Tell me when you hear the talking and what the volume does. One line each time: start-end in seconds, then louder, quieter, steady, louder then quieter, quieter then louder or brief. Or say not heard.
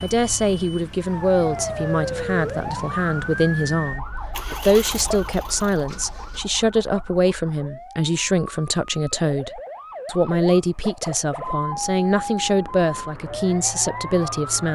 0.0-14.7 steady.